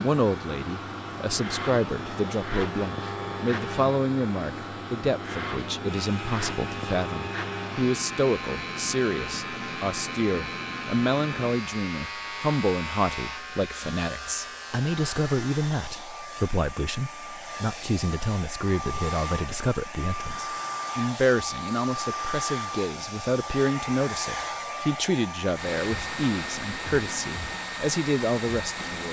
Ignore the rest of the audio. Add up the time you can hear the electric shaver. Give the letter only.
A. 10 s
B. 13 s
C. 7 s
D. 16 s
D.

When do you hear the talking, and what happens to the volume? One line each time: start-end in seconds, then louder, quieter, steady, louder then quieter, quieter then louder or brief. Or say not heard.
0.0-29.0 steady.